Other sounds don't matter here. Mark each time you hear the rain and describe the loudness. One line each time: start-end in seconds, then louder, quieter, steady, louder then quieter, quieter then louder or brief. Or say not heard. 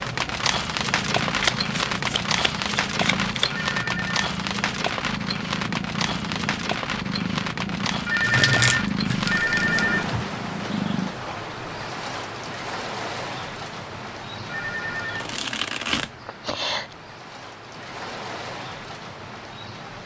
0.0-20.0 quieter.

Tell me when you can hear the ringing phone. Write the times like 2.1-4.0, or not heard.
3.5-4.2, 8.1-10.1, 14.4-15.2.